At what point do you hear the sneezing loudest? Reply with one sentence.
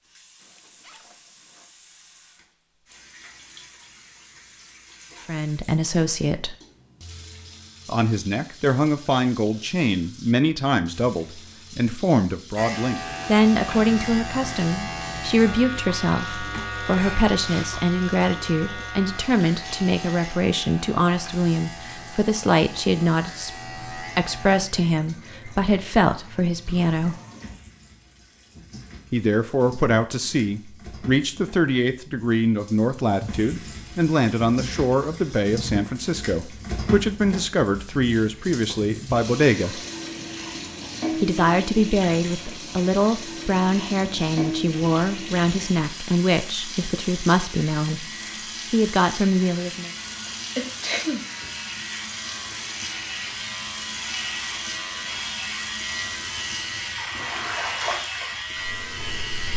The volume of the sneezing peaks at 51 seconds.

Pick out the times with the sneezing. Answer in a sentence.
You can hear the sneezing from 16.5 to 17.7 s and from 50.2 to 51.2 s.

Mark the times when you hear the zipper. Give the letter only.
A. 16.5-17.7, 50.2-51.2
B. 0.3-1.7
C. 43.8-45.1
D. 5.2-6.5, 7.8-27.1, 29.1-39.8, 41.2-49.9
B.